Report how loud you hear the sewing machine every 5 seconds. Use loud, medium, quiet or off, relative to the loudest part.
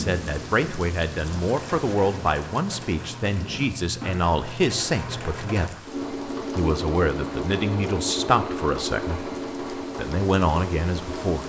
medium, loud, loud.